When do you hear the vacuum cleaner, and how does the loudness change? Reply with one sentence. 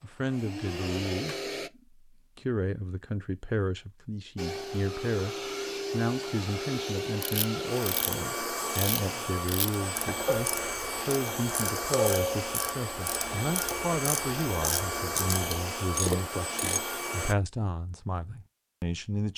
The vacuum cleaner can be heard briefly from 0.1 to 1.7 s; and from 4.3 to 17.4 s, at a steady volume.